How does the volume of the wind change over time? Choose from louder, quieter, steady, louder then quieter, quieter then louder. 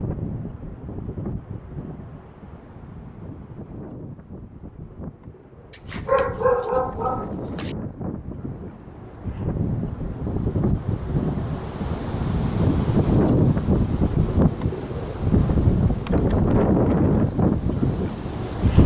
louder.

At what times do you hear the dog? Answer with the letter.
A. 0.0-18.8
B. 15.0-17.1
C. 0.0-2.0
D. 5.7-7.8
D.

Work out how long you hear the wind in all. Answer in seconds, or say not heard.
19 s.